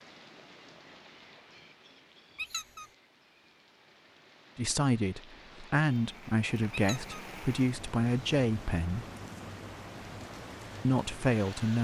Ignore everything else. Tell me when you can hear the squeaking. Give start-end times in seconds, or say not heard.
2.4-2.9, 6.7-7.2.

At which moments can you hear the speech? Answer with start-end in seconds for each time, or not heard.
4.5-9.1, 10.8-11.7.